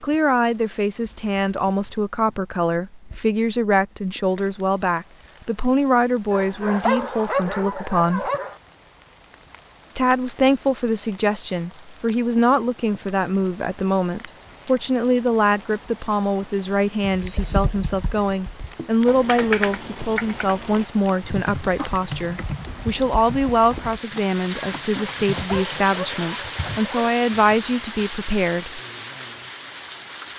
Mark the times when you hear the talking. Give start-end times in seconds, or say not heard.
0.0-8.3, 9.9-28.8.